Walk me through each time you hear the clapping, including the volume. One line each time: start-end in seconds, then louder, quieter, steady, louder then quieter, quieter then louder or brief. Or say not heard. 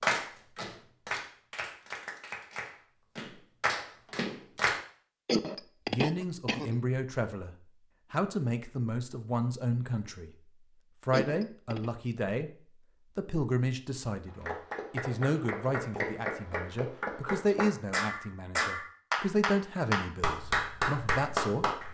0.0-4.8 quieter then louder
14.2-21.8 louder.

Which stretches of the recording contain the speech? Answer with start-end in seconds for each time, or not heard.
5.9-10.3, 11.0-12.5, 13.2-21.6.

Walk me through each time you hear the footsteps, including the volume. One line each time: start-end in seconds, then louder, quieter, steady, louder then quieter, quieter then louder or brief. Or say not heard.
not heard.